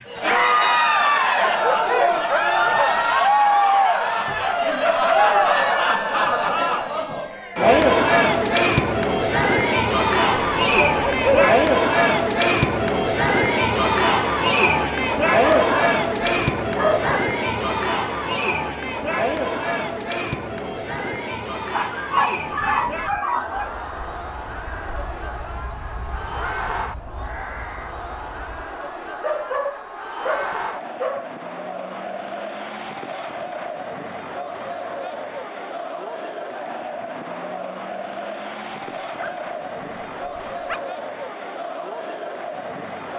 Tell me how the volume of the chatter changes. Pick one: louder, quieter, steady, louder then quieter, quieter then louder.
quieter.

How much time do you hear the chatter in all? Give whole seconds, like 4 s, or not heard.
43 s.